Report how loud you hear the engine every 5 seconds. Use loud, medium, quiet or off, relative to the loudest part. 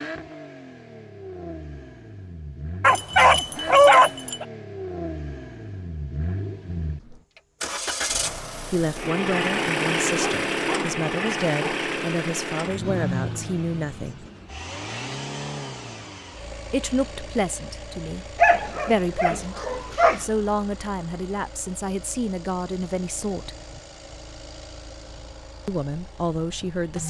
medium, loud, loud, medium, quiet, quiet.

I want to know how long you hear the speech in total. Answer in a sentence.
The speech can be heard for 14 seconds in total.